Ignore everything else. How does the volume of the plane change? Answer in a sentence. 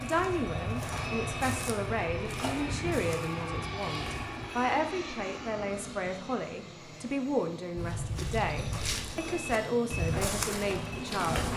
The loudness of the plane goes down, then up.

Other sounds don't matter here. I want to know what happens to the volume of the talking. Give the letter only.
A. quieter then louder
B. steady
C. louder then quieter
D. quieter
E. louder
B.